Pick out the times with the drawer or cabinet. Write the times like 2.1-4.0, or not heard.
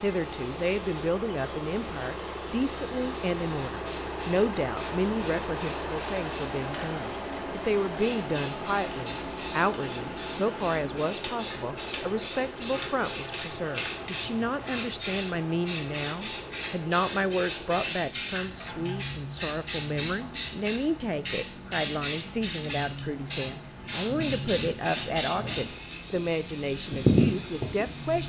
not heard.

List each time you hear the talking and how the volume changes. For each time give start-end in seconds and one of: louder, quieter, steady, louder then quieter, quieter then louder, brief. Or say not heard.
0.0-28.2 steady.